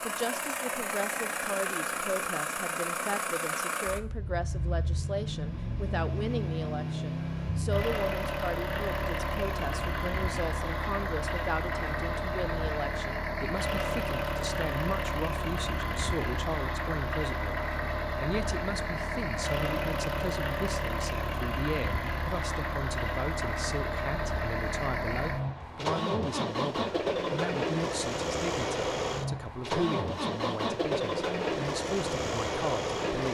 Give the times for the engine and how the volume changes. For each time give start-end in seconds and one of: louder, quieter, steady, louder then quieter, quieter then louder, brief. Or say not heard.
0.0-33.3 steady.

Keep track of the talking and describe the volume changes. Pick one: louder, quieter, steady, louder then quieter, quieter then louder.
steady.